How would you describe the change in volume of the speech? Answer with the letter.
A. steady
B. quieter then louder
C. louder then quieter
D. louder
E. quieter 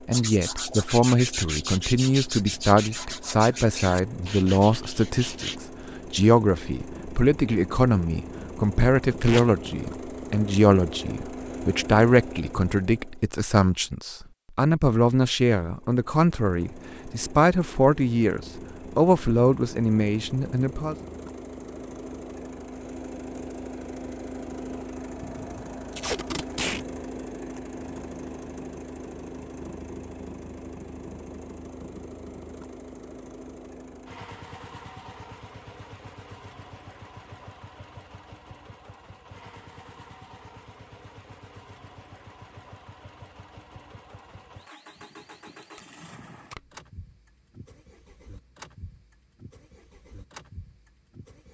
A.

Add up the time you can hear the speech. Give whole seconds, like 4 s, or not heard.
21 s.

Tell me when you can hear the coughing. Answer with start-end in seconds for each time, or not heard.
not heard.